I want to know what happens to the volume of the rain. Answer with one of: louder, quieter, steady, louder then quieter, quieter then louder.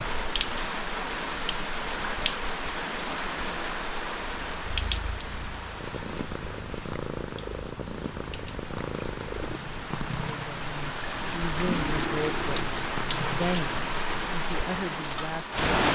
quieter then louder.